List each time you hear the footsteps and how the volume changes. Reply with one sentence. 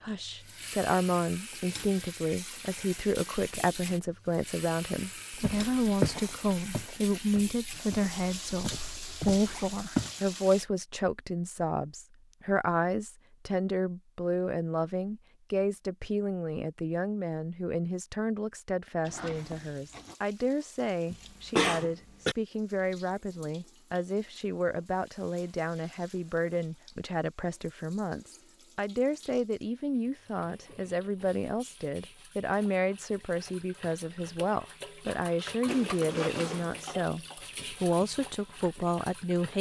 You can hear the footsteps from 5.4 to 10.1 s, getting quieter then louder.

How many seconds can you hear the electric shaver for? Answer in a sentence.
The electric shaver can't be heard in this clip.